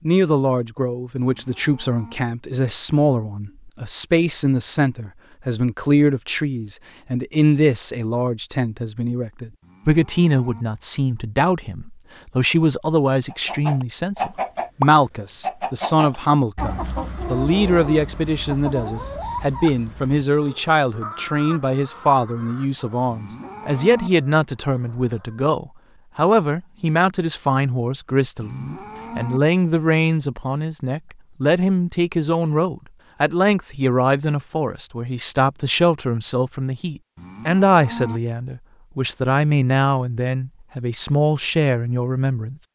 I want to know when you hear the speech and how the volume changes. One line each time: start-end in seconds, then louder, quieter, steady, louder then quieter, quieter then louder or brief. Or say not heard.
0.1-42.5 steady.